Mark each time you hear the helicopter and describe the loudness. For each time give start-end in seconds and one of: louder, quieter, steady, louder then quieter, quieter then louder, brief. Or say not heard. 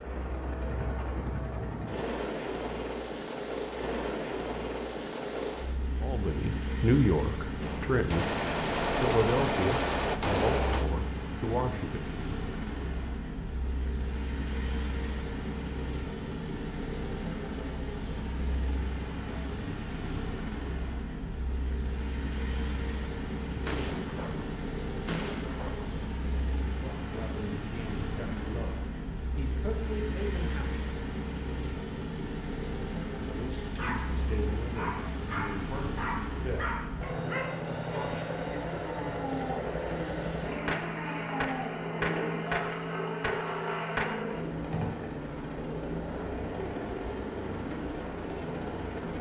0.0-49.1 steady.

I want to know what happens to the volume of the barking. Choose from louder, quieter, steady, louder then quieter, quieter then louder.
steady.